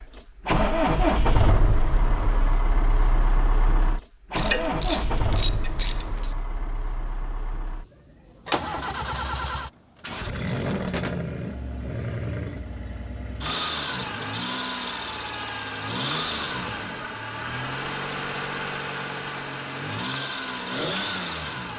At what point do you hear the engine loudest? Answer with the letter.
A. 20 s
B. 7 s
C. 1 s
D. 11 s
C.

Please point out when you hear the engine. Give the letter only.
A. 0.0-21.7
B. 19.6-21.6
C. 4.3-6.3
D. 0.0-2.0
A.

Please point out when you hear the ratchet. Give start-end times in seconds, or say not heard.
4.3-6.3.